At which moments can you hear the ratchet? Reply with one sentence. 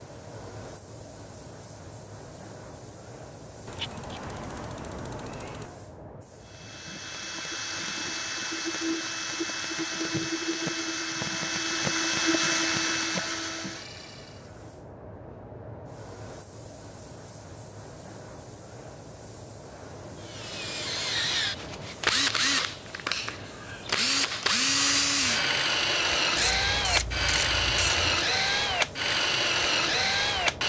The ratchet can be heard from 3.6 to 5.7 s and from 26.4 to 28.2 s.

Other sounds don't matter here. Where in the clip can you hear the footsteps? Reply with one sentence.
You can't hear the footsteps here.